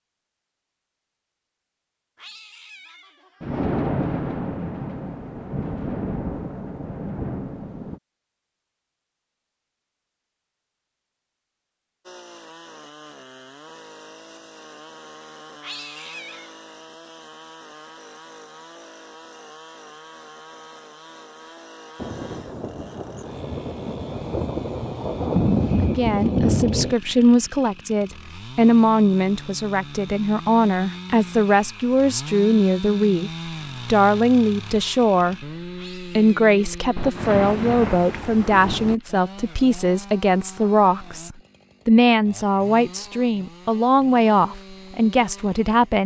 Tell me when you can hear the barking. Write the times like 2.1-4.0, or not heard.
not heard.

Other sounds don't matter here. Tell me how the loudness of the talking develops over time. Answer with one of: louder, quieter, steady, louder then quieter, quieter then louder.
steady.